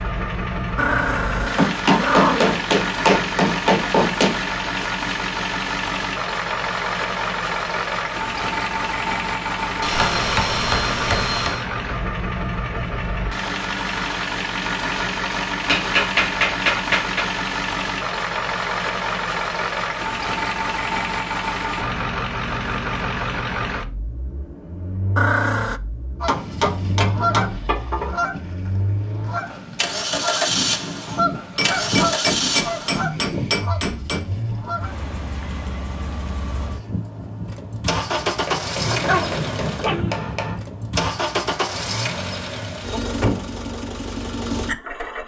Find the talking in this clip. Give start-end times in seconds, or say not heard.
not heard.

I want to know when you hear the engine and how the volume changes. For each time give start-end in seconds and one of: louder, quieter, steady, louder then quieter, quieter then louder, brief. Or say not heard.
0.0-45.2 steady.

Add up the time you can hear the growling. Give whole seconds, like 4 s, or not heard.
4 s.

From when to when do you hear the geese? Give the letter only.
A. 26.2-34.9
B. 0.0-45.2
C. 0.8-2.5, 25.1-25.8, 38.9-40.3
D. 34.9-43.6
A.